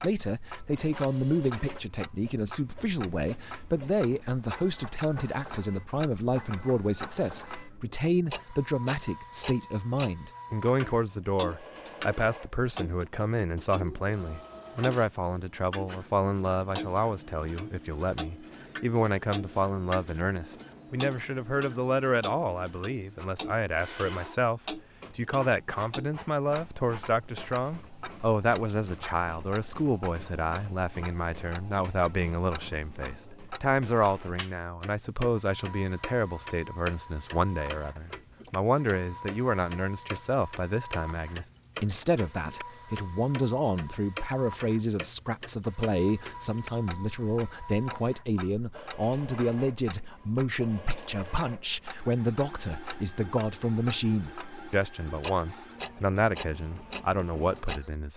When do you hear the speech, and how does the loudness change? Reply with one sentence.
The speech can be heard from 0.0 to 58.1 s, at a steady volume.